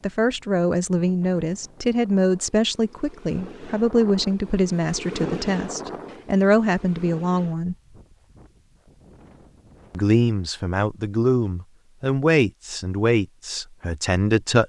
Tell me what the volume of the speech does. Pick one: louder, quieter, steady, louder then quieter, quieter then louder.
steady.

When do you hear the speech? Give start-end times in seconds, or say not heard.
0.0-7.8, 9.9-14.6.